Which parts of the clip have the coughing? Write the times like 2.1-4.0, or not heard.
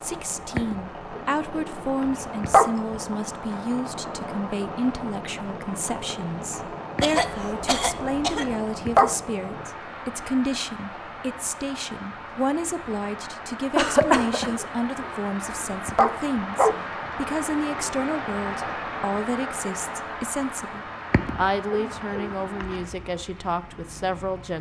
7.0-8.4, 13.8-14.6.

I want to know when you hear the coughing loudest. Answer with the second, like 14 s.
14 s.